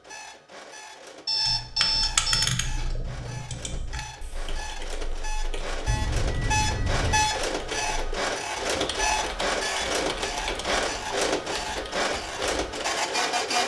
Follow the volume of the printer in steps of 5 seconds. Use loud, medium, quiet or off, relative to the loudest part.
quiet, loud, loud.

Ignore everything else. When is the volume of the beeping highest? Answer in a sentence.
The loudest moment of the beeping is at 2 seconds.